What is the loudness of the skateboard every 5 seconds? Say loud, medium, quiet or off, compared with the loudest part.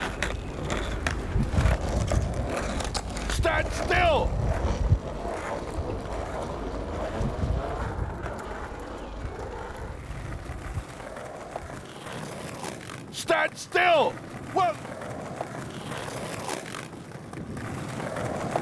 loud, loud, medium, loud.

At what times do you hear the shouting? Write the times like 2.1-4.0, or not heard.
3.2-4.3, 13.1-14.8.